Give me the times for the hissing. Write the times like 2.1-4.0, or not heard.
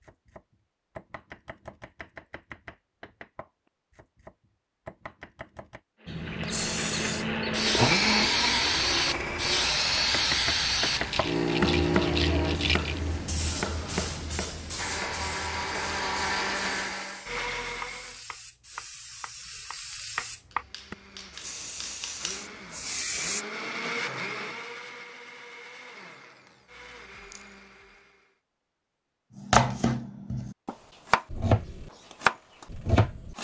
6.0-23.4.